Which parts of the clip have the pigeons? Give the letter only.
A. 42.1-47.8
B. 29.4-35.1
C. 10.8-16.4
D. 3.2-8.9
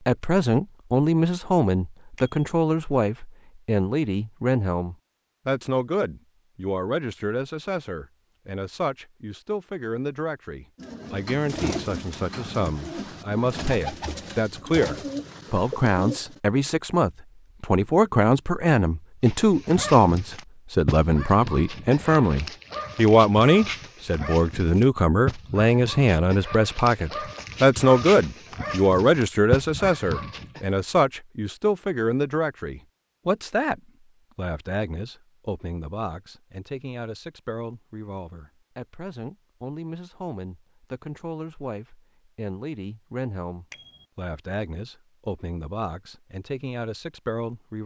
C.